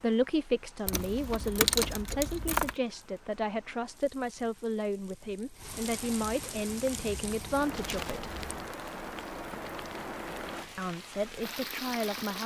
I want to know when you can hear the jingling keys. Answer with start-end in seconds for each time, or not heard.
0.8-2.8, 6.7-8.7.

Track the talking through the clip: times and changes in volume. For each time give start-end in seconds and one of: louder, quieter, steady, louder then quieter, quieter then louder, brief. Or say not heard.
0.0-8.3 steady
10.8-12.4 brief.